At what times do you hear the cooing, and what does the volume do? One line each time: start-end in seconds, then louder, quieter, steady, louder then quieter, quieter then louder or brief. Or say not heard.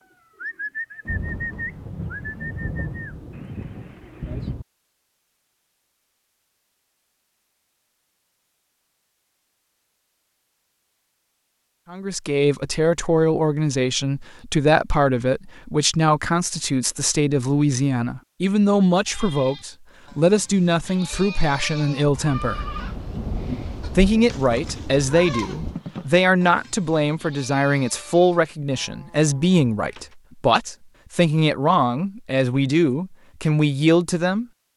0.0-4.5 quieter.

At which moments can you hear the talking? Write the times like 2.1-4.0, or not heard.
11.9-22.6, 23.9-34.5.